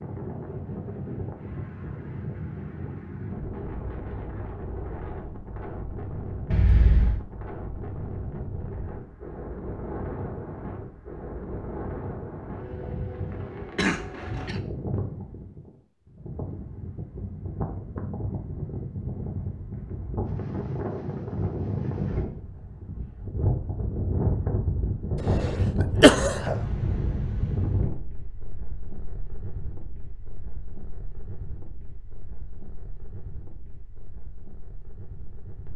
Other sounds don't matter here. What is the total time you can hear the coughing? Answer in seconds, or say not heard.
3 s.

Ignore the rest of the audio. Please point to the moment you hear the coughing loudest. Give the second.
26 s.